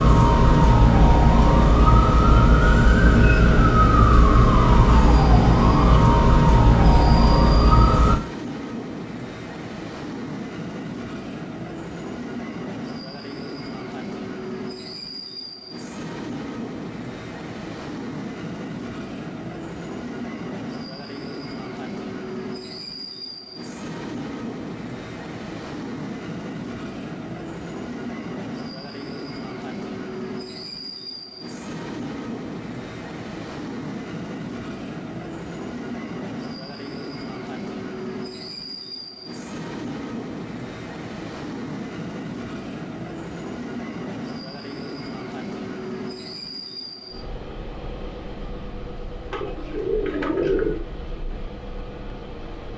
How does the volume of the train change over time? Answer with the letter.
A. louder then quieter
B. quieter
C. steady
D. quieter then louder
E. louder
C.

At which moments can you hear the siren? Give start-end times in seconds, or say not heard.
0.0-8.2.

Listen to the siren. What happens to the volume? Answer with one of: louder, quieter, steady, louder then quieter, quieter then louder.
steady.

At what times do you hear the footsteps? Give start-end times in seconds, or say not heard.
not heard.